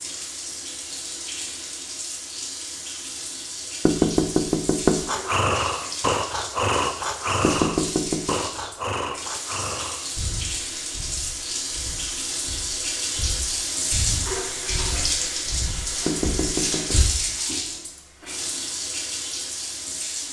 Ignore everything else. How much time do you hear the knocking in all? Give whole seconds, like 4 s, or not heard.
3 s.